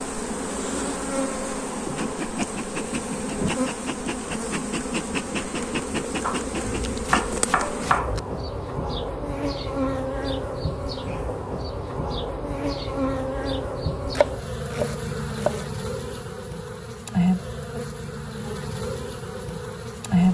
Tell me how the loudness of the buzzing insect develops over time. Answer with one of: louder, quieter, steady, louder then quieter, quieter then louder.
steady.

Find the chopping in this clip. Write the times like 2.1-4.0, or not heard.
6.2-8.2, 14.2-15.7.